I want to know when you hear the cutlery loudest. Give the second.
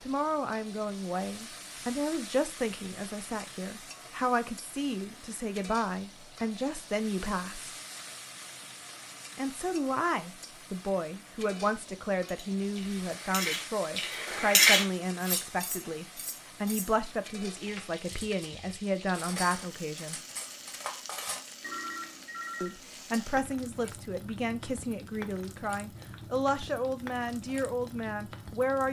15 s.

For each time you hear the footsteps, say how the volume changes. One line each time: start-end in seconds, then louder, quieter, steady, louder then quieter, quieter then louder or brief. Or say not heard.
not heard.